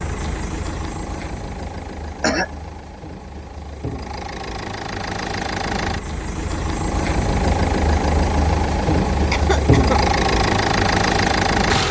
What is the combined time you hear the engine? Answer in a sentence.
The engine can be heard for 12 seconds in total.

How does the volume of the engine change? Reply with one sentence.
The loudness of the engine goes up.